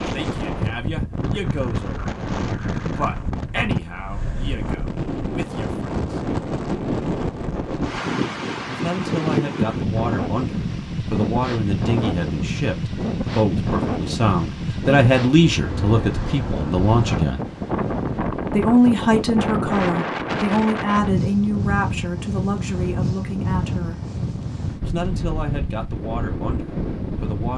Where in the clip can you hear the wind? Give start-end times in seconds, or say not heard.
0.0-27.5.